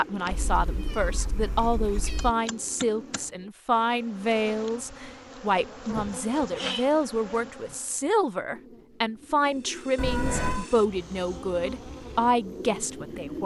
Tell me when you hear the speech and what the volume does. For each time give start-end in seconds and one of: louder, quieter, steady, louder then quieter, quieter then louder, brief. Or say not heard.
0.0-13.4 steady.